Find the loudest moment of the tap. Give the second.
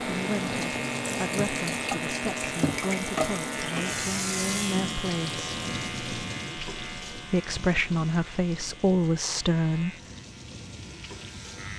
3 s.